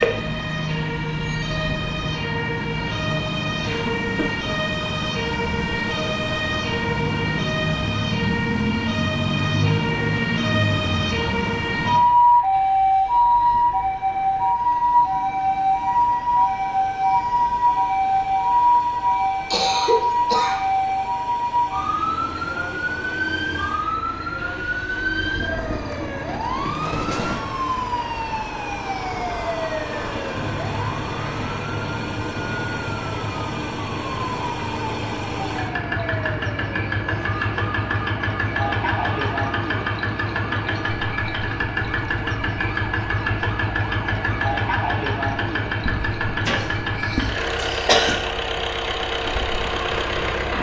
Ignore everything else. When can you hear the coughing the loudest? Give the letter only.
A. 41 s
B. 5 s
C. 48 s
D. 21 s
C.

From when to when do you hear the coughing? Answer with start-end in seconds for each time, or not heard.
3.6-4.5, 19.5-20.6, 46.5-48.1.